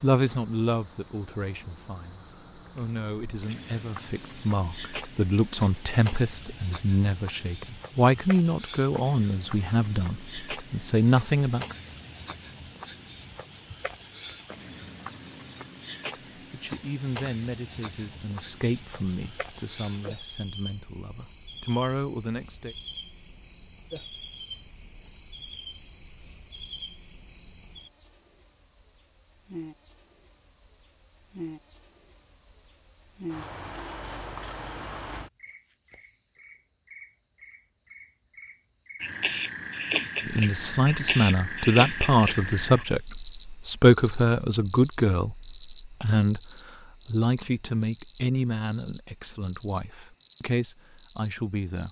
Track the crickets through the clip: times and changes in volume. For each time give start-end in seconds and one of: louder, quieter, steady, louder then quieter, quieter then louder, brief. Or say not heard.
0.0-51.8 louder.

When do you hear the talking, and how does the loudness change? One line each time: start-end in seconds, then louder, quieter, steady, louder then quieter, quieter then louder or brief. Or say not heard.
0.0-11.7 louder
16.5-22.8 quieter then louder
40.2-51.8 quieter.